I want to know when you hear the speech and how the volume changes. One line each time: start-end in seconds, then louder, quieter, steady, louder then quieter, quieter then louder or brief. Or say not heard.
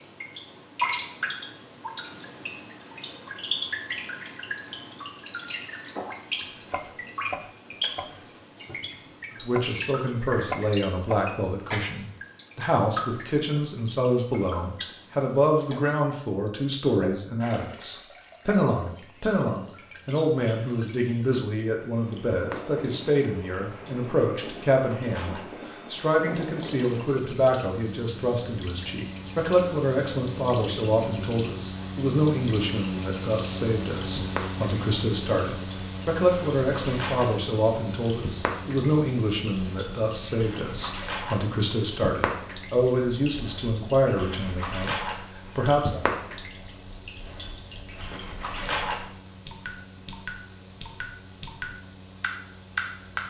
9.4-46.0 steady.